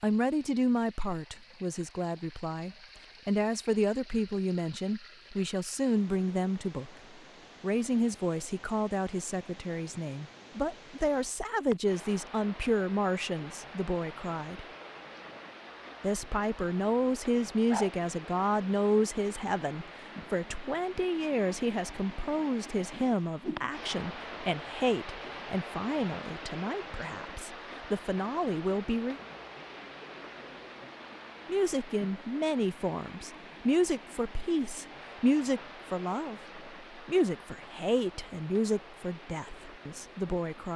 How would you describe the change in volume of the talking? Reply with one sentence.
The volume of the talking stays about the same.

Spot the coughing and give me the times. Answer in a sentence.
You can't hear the coughing here.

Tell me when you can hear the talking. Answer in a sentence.
The talking can be heard from 0.0 to 6.9 s, from 7.6 to 14.7 s, from 16.0 to 29.2 s and from 31.4 to 40.7 s.